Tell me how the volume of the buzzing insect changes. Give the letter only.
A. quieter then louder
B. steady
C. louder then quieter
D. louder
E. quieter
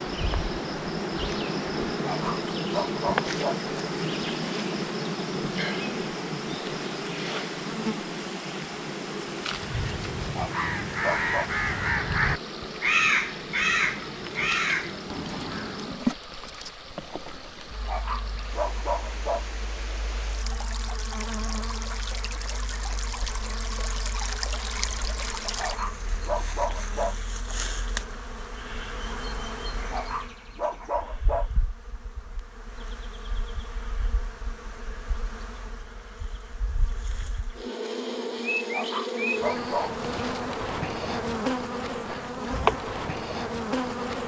A.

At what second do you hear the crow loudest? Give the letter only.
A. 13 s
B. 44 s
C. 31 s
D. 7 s
A.